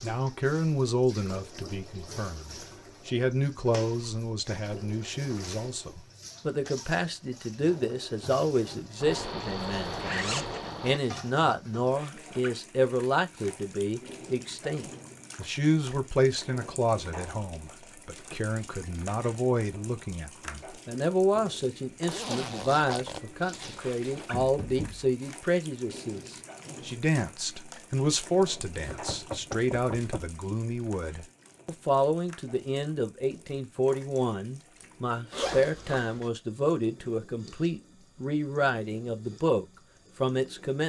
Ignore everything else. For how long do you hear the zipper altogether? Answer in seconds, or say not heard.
5 s.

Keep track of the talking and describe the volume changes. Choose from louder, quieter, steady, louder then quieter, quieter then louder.
steady.